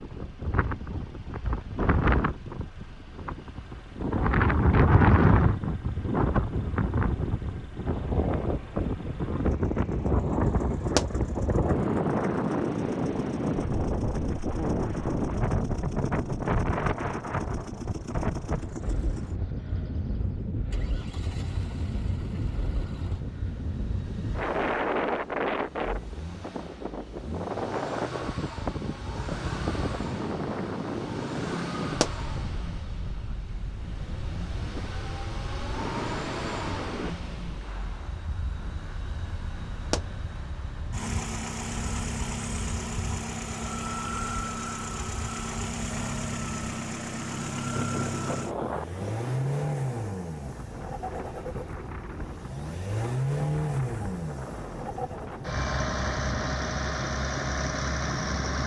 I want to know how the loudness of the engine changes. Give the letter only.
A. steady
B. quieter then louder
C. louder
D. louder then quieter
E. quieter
C.